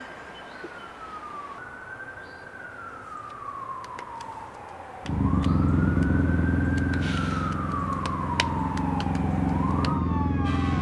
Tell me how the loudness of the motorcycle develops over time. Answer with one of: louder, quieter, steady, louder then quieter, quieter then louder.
quieter then louder.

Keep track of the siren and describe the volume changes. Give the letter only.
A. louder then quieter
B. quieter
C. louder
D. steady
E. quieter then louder
C.